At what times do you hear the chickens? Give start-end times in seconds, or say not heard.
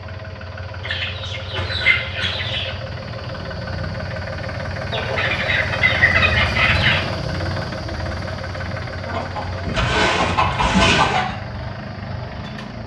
0.8-2.7, 4.9-7.0, 9.1-11.3.